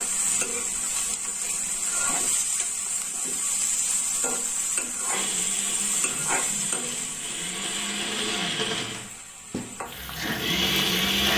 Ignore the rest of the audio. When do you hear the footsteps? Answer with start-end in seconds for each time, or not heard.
not heard.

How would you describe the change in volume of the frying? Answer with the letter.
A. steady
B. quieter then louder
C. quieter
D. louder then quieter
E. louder
C.